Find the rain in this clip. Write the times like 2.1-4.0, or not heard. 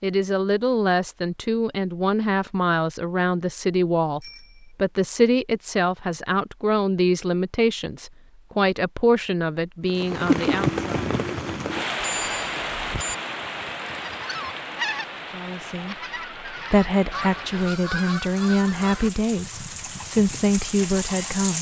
9.8-21.5.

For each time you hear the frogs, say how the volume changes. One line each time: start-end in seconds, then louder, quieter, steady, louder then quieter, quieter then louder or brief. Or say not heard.
not heard.